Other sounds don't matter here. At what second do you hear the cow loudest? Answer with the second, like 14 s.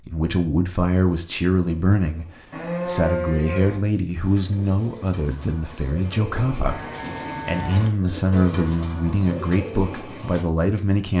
3 s.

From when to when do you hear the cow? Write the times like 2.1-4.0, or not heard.
2.5-3.8, 6.7-8.8.